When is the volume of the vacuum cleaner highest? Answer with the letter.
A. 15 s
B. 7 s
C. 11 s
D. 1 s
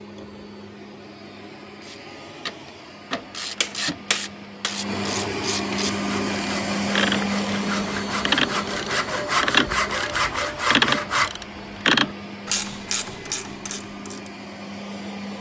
B.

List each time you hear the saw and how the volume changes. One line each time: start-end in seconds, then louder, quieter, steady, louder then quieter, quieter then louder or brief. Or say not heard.
6.0-11.3 louder.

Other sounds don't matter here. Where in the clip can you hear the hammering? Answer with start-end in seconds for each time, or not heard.
3.6-4.8.